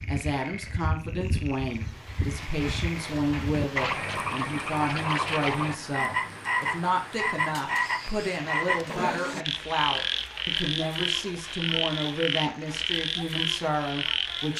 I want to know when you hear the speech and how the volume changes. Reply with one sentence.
The speech can be heard from 0.1 to 14.5 s, at a steady volume.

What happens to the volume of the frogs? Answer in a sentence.
The loudness of the frogs goes up.